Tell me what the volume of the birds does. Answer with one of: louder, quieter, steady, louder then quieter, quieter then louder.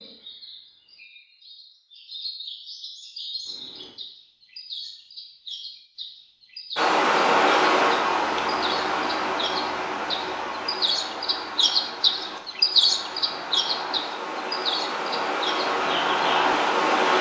louder then quieter.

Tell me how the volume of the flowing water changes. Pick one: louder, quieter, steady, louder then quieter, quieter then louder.
quieter then louder.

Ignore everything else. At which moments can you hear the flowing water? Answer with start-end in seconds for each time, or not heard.
6.8-17.1.